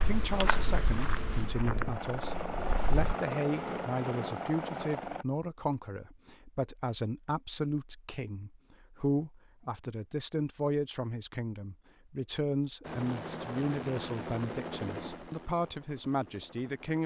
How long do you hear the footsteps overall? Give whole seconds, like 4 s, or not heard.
3 s.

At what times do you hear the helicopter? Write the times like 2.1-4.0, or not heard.
1.6-5.2, 12.8-17.0.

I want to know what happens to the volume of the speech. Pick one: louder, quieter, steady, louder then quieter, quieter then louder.
steady.